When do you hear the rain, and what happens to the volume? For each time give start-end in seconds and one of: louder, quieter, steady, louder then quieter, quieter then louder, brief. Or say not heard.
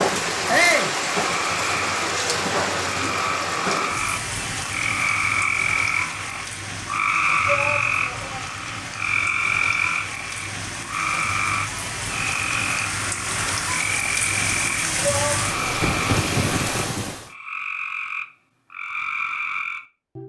0.0-17.3 quieter then louder.